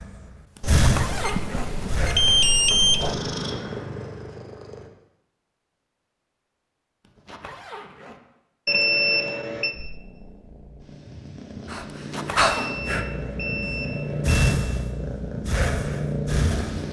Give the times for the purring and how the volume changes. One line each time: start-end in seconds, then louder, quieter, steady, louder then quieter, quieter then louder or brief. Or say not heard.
3.0-4.9 brief
9.7-16.8 louder.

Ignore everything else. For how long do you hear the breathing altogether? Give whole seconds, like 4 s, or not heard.
8 s.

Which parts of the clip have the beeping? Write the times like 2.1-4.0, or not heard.
0.6-3.1, 8.7-9.8, 12.4-14.4.